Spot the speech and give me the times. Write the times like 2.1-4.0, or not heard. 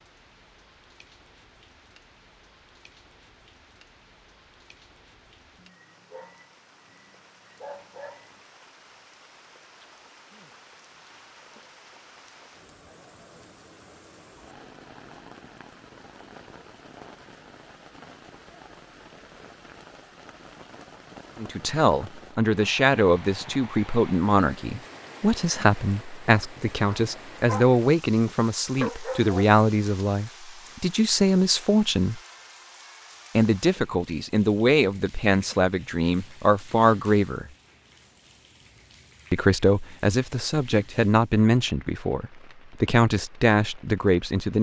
21.4-32.2, 33.4-37.5, 39.3-44.5.